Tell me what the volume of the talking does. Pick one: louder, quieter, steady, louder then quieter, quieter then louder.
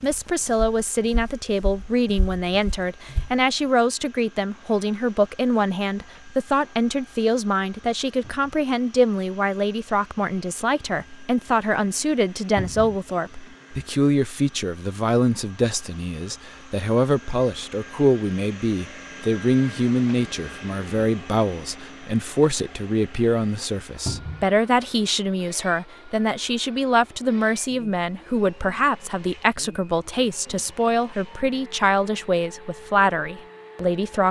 steady.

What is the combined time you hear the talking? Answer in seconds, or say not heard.
34 s.